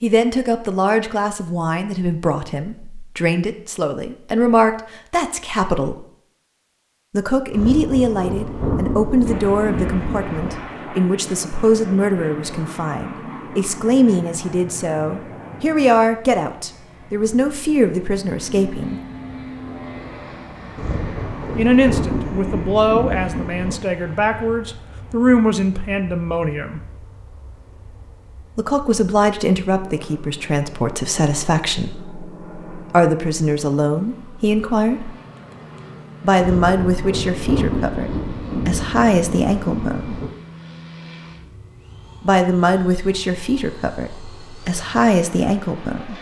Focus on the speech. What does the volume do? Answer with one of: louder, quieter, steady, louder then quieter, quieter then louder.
steady.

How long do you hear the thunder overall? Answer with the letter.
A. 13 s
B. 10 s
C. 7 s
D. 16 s
B.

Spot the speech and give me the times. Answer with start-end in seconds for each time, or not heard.
0.0-6.0, 7.1-19.0, 21.6-26.8, 28.6-35.1, 36.2-40.1, 42.2-46.1.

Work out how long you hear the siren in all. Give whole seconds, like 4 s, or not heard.
not heard.